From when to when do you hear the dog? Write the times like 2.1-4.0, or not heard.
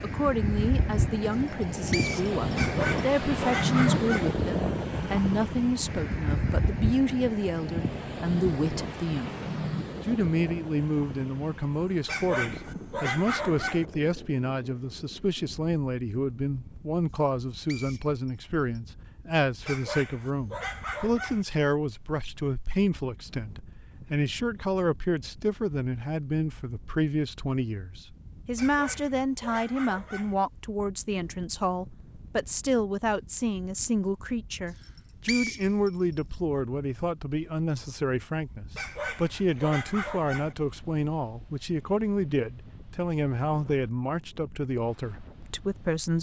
2.5-4.3, 12.1-13.8, 19.6-21.4, 28.6-30.4, 38.8-40.5.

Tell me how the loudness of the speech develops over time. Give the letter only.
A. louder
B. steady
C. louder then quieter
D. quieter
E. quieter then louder
B.